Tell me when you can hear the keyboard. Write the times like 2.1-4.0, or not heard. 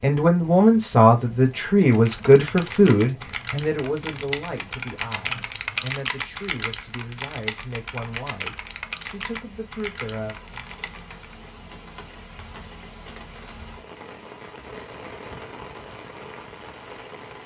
1.8-11.4.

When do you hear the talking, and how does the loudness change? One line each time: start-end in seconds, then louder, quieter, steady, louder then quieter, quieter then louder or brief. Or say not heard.
0.0-10.7 quieter.